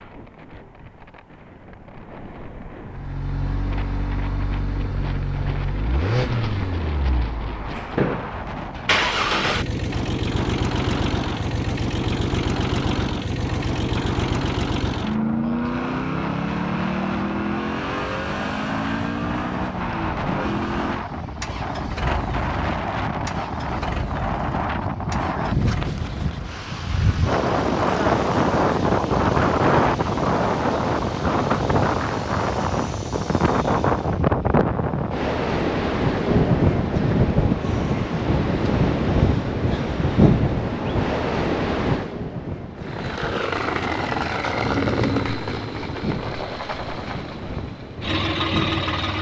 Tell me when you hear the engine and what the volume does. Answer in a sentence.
The engine can be heard from 2.9 to 34.2 s, getting quieter; and from 42.8 to 49.1 s, getting quieter then louder.